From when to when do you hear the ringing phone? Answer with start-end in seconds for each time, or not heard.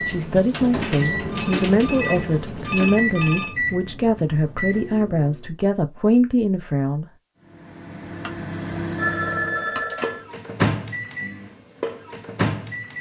1.3-3.8, 8.2-10.2.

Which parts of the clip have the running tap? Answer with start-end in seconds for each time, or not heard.
0.0-3.5.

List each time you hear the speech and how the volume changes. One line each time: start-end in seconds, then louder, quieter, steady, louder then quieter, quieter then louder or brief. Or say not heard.
0.0-7.0 steady.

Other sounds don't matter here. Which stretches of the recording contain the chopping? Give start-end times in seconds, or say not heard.
not heard.